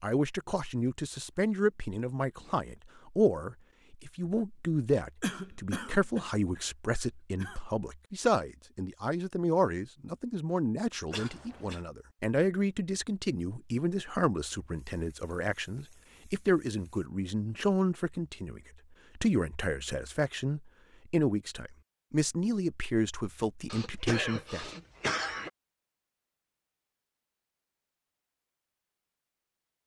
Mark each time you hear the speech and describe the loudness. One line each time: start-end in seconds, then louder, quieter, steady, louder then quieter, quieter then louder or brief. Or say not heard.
0.0-24.7 steady.